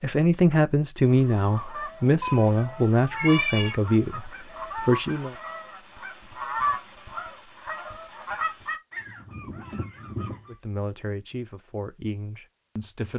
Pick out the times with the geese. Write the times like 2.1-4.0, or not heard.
1.0-10.6.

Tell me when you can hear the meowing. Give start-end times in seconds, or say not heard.
2.2-3.8.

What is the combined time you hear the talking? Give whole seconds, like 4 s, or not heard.
8 s.